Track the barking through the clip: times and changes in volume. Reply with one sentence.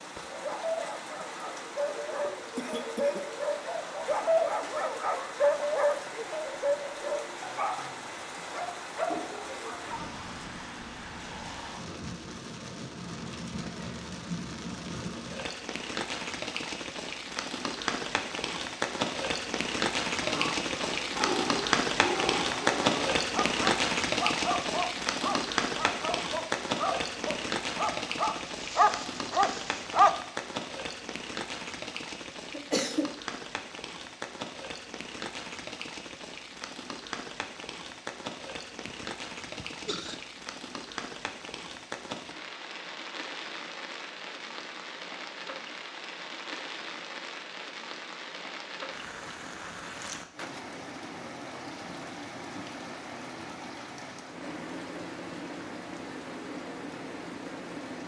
The barking can be heard from 0.3 to 10.2 s, getting louder then quieter; and from 20.2 to 30.1 s, getting louder.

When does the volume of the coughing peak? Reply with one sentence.
The volume of the coughing peaks at 33 seconds.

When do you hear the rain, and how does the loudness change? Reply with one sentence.
You can hear the rain from 0.0 to 58.0 s, getting louder then quieter.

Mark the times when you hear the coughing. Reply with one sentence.
The coughing can be heard from 2.5 to 3.3 s, from 32.5 to 33.1 s and from 38.9 to 40.1 s.